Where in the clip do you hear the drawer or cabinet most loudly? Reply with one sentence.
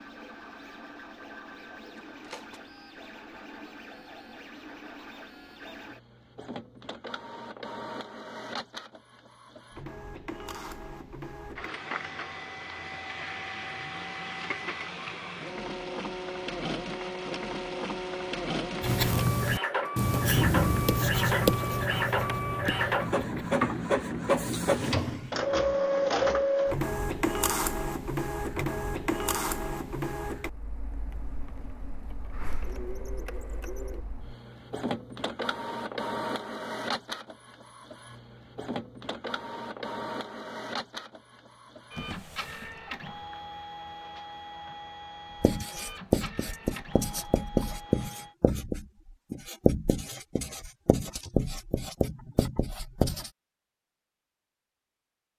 The volume of the drawer or cabinet peaks at 25 seconds.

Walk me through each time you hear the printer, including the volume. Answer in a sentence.
The printer can be heard from 0.0 to 48.4 s, getting louder then quieter.